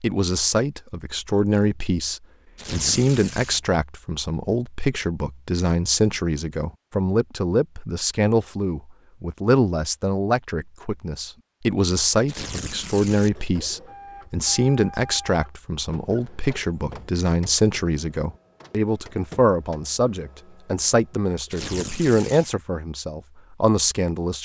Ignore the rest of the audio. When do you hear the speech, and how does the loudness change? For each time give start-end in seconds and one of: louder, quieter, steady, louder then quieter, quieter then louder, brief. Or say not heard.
0.0-24.4 steady.